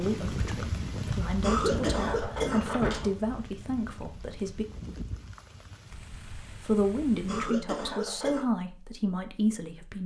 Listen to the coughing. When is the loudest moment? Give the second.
2 s.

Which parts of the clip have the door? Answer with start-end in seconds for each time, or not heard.
1.6-3.0.